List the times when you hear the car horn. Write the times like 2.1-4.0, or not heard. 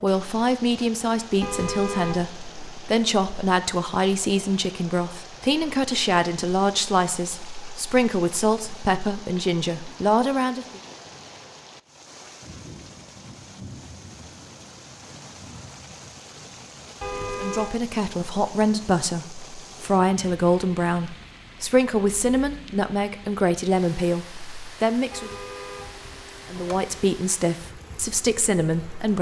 1.4-2.3, 17.0-17.7, 25.1-27.1.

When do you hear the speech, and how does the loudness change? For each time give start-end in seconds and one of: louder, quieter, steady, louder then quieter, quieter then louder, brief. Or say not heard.
0.0-10.8 steady
17.4-25.4 steady
26.5-29.1 brief.